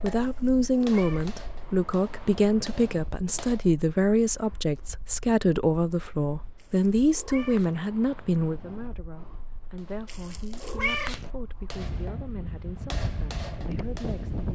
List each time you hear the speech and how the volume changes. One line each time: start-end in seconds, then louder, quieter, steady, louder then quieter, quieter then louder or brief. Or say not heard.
0.0-14.5 quieter.